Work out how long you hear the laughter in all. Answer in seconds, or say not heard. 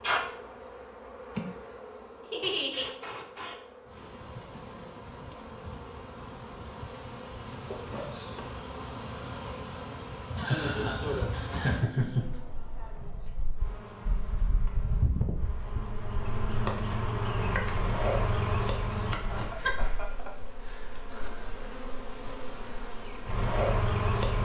4 s.